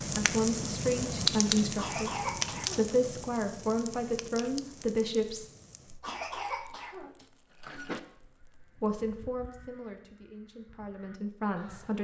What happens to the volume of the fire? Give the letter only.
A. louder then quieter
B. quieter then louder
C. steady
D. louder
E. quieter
E.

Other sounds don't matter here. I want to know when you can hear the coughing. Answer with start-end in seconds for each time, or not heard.
1.8-3.0, 6.0-8.0.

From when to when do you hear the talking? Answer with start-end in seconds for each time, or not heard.
0.0-5.5, 8.8-11.9.